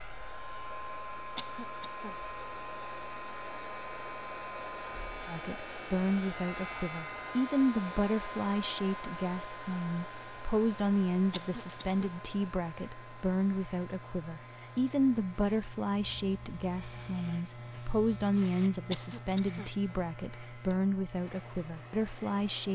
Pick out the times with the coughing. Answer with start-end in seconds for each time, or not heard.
1.4-2.1, 11.3-12.1, 18.9-19.7.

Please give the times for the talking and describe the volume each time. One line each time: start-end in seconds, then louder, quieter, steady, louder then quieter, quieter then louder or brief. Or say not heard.
5.2-22.7 steady.